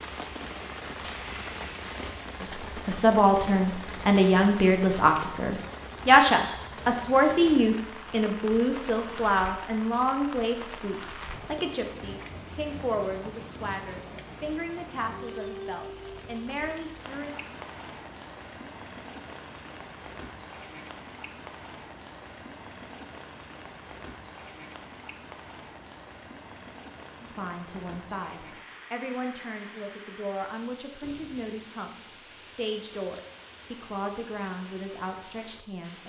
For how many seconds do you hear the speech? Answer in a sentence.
The speech can be heard for 24 seconds in total.